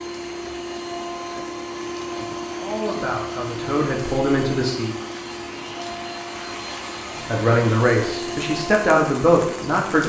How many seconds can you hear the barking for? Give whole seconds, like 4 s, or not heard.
not heard.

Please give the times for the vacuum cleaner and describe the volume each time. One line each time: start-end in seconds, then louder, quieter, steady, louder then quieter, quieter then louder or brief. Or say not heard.
0.0-9.9 steady.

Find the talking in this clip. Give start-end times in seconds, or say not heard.
2.5-5.0, 7.3-10.0.